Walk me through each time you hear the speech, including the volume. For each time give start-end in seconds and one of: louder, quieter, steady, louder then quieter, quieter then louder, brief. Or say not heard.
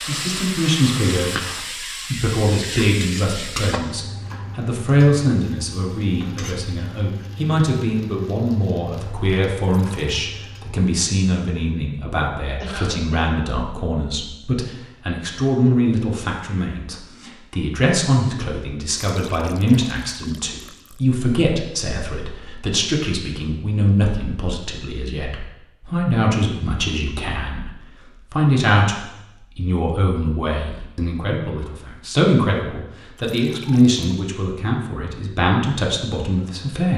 0.1-36.9 steady.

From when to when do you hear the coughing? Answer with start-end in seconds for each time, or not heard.
12.6-13.2.